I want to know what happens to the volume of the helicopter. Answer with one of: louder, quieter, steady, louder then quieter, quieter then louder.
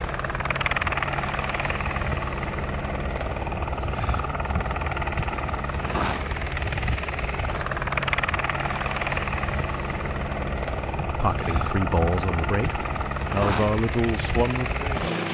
steady.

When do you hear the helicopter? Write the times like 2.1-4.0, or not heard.
0.0-15.3.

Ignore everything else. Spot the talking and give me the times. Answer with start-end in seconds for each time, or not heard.
11.0-15.3.